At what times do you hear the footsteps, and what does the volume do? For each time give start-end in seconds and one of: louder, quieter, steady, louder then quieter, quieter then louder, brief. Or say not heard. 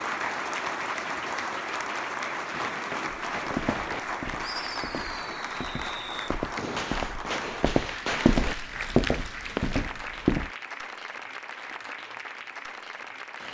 3.4-10.5 louder.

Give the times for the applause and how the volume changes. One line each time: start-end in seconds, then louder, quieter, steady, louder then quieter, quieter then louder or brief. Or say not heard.
0.0-13.4 quieter.